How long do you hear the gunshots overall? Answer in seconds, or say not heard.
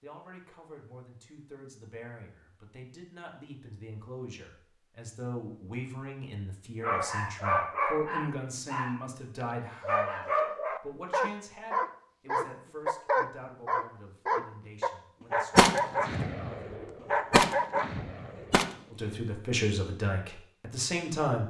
3 s.